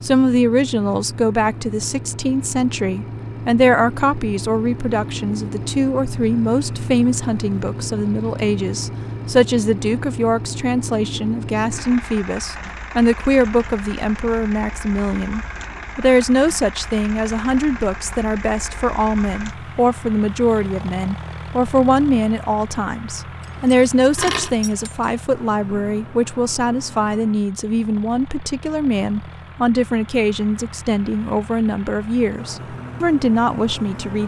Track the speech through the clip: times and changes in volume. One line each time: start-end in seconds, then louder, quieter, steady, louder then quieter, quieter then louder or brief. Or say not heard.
0.0-34.2 steady.